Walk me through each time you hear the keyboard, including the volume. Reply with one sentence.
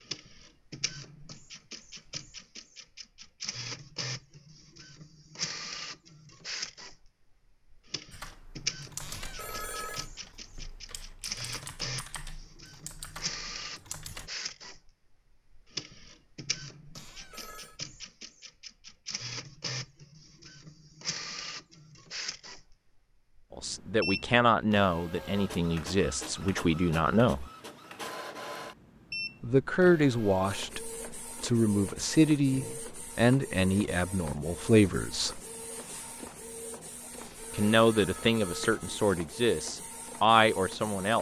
The keyboard can be heard from 8.1 to 14.3 s, getting quieter then louder.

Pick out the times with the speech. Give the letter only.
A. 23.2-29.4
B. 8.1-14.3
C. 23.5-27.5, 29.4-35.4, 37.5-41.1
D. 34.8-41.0
C.